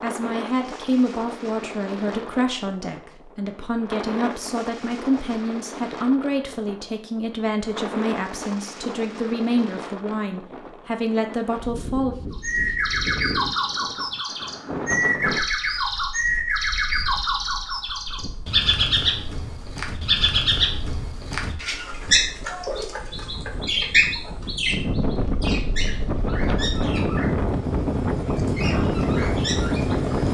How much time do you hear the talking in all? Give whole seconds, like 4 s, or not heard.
12 s.